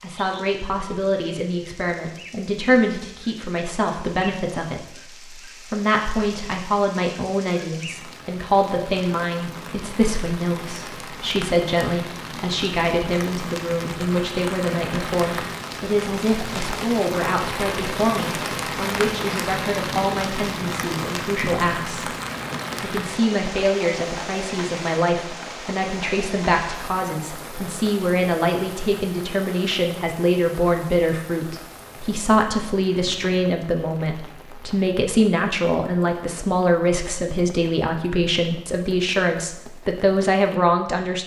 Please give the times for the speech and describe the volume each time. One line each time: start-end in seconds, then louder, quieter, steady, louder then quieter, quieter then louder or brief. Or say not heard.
0.0-22.1 steady
22.8-41.2 steady.